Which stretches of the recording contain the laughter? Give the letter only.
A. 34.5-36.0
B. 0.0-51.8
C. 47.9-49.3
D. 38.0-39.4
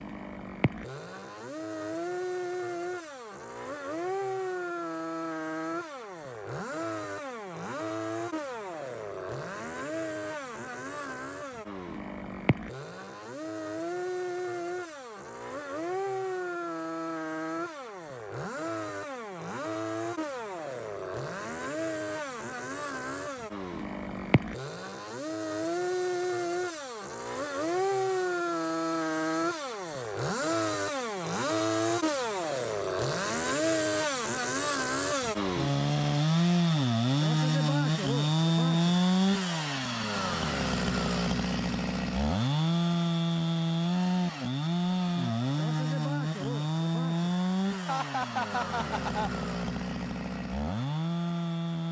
C.